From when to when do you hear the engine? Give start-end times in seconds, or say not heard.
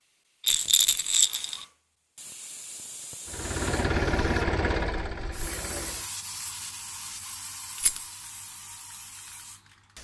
3.2-6.1.